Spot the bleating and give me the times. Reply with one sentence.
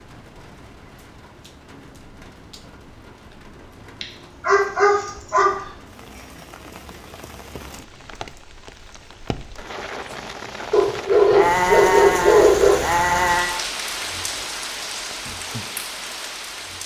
You can hear the bleating from 11.3 to 13.6 s.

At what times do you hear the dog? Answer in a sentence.
You can hear the dog from 4.0 to 5.5 s and from 10.7 to 12.8 s.